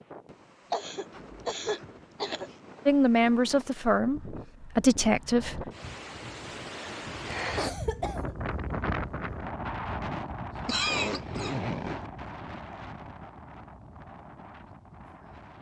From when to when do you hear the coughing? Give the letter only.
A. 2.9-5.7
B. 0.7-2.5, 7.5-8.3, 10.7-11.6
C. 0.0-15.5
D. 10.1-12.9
B.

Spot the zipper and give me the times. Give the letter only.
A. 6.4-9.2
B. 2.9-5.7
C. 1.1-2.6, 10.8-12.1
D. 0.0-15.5
C.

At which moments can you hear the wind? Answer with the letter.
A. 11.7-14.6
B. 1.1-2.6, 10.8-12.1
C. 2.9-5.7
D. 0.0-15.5
D.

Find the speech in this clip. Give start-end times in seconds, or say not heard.
2.9-5.7.